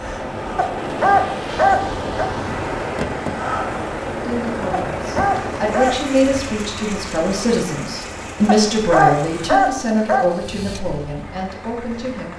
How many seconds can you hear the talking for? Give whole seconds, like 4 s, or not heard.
8 s.